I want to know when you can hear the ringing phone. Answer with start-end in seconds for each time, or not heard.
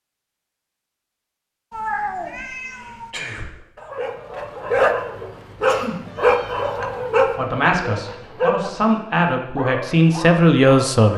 not heard.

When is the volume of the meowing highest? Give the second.
2 s.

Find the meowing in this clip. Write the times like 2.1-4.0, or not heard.
1.7-3.1, 5.9-7.0.